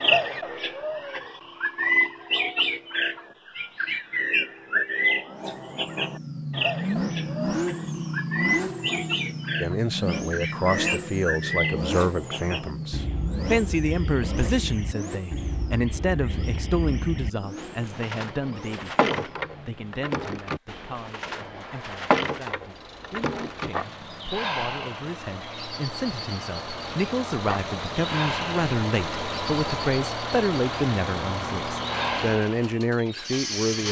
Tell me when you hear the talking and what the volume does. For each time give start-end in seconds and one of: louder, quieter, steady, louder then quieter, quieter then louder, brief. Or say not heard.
9.6-33.8 quieter then louder.